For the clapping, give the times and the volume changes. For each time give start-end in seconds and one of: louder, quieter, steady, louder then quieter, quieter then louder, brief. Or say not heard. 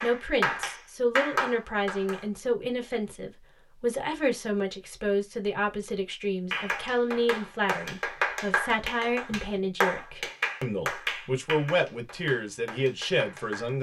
0.0-2.2 brief
6.5-13.7 louder then quieter.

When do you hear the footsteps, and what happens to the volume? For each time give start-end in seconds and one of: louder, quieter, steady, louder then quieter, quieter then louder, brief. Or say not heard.
not heard.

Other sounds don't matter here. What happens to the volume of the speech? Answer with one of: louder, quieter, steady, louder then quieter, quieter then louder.
steady.